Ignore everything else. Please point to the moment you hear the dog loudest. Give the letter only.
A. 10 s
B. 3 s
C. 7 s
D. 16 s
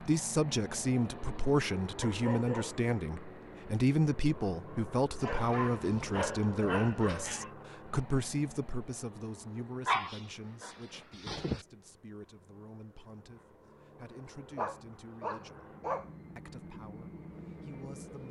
A.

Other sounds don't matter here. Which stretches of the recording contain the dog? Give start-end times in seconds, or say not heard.
2.0-2.9, 5.2-7.5, 9.8-11.7, 14.6-16.1.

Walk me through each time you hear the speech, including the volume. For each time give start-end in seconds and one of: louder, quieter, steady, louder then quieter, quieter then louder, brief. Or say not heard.
0.0-15.8 quieter
16.4-18.2 brief.